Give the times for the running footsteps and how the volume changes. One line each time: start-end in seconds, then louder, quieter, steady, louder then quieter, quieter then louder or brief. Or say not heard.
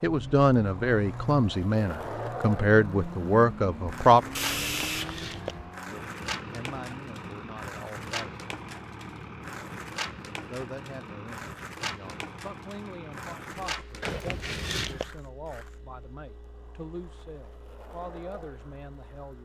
not heard.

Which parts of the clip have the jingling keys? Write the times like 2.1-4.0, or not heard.
4.5-5.7, 14.0-15.2.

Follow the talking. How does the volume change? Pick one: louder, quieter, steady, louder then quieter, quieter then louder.
quieter.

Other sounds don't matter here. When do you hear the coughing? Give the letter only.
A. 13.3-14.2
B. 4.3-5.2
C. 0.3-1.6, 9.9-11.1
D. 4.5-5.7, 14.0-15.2
B.